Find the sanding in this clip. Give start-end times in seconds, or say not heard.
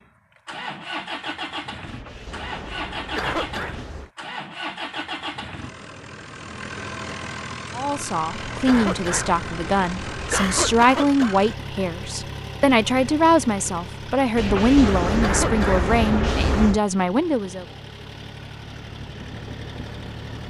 1.9-4.1, 8.3-10.9, 14.3-16.8.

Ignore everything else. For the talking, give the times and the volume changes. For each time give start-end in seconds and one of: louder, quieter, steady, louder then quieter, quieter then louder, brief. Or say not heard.
7.8-17.6 steady.